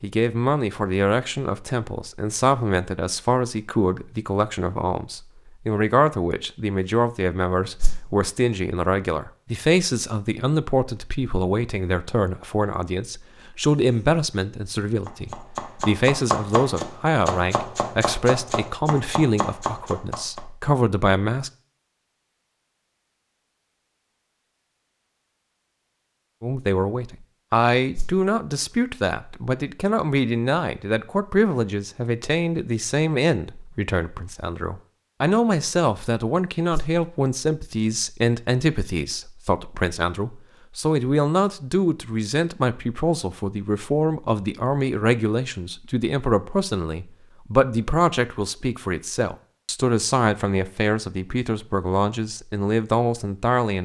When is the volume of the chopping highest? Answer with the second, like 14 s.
16 s.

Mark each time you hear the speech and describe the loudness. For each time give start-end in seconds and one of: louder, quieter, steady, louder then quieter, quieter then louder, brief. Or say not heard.
0.0-21.5 steady
26.4-53.8 steady.